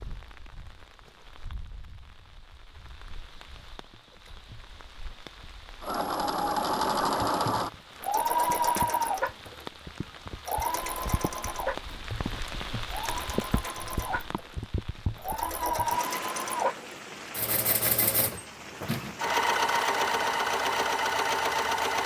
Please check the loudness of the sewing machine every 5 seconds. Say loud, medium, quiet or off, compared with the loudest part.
off, loud, medium, loud, loud.